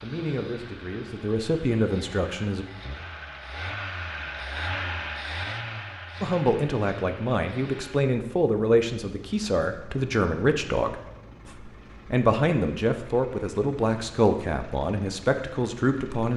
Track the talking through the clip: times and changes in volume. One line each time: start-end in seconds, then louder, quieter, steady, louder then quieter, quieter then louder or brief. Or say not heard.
0.0-2.6 brief
6.2-16.3 steady.